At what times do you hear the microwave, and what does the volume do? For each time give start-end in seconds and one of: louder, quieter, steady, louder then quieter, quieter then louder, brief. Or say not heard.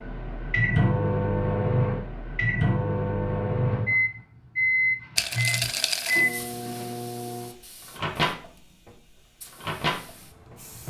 0.0-10.8 quieter.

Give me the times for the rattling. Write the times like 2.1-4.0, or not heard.
5.2-6.2.